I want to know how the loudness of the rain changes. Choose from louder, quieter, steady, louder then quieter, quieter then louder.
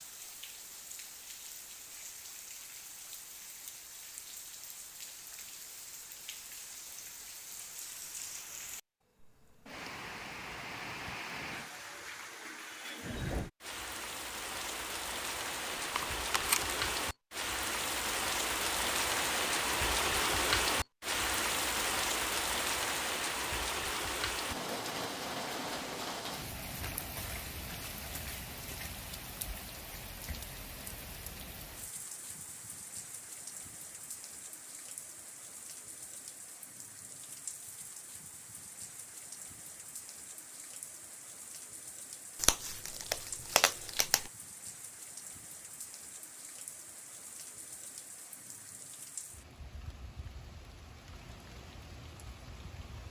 louder then quieter.